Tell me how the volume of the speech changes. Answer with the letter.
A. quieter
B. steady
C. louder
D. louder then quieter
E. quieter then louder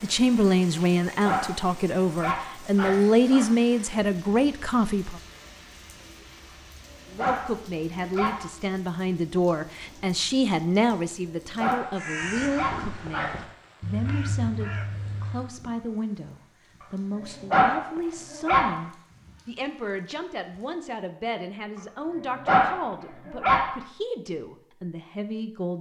A.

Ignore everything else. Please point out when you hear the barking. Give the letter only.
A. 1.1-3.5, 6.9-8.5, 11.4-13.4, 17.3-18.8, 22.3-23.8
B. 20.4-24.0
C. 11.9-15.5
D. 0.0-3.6
A.